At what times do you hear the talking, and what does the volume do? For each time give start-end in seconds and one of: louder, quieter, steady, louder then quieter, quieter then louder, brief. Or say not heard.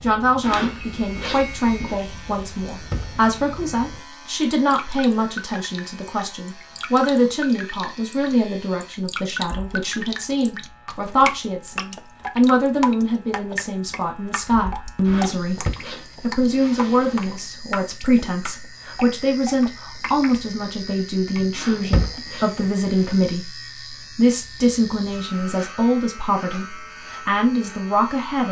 0.0-28.4 steady.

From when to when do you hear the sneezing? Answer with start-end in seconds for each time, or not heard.
not heard.